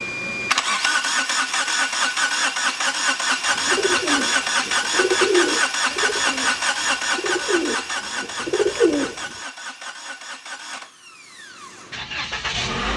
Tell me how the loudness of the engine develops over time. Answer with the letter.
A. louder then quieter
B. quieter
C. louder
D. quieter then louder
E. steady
B.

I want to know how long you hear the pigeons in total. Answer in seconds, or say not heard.
6 s.